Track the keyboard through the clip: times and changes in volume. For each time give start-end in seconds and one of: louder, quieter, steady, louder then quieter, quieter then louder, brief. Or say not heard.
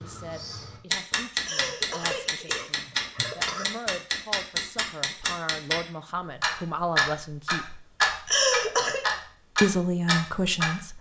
not heard.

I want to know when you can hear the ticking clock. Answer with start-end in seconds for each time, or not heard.
0.0-5.8, 6.4-10.8.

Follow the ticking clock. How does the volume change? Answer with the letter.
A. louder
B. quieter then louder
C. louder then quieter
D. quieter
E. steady
A.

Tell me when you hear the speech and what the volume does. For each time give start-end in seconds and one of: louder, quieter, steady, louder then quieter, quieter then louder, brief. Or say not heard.
0.0-7.8 louder
9.6-10.9 brief.